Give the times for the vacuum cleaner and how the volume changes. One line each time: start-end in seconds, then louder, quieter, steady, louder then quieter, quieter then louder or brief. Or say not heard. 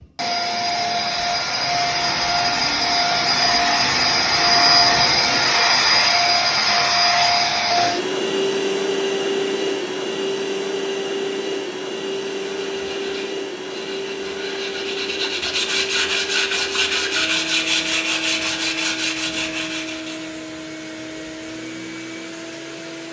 0.0-23.0 quieter.